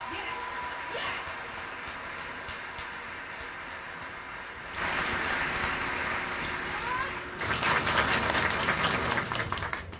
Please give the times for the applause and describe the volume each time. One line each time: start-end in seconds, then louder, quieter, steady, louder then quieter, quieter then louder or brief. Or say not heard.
0.0-9.9 louder.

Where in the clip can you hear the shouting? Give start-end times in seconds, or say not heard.
0.1-1.4, 6.7-7.1.